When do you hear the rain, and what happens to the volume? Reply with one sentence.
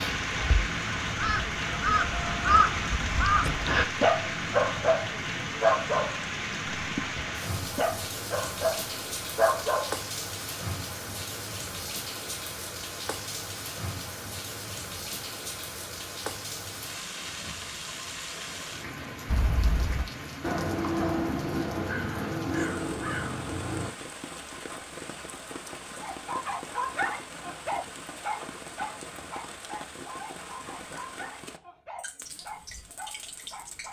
The rain can be heard from 0.0 to 33.8 s, getting quieter.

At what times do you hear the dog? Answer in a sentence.
The dog can be heard from 3.8 to 9.9 s and from 26.0 to 33.8 s.